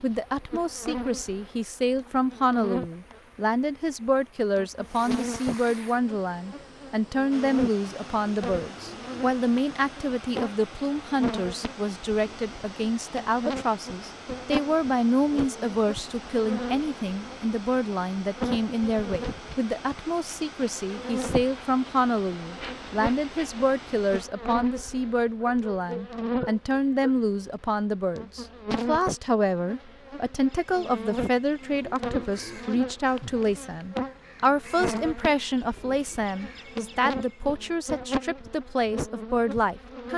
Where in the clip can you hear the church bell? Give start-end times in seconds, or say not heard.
not heard.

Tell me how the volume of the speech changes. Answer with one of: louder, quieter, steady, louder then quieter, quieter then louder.
steady.